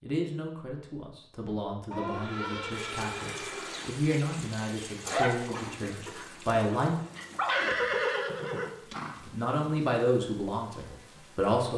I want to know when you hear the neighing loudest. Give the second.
8 s.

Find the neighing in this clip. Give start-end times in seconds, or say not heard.
1.9-3.9, 7.5-9.2.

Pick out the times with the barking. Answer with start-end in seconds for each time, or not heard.
5.0-7.8.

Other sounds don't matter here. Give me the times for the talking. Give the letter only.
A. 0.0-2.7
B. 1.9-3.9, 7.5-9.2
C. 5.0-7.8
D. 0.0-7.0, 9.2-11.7
D.